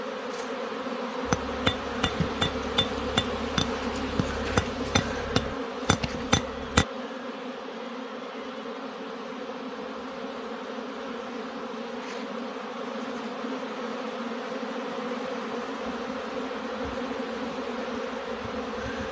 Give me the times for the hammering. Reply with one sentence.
The hammering can be heard from 1.2 to 6.8 s.